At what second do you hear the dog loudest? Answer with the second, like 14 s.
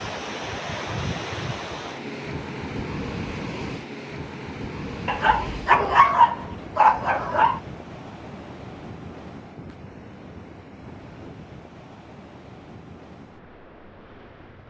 6 s.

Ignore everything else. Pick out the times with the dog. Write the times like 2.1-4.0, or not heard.
5.0-7.6.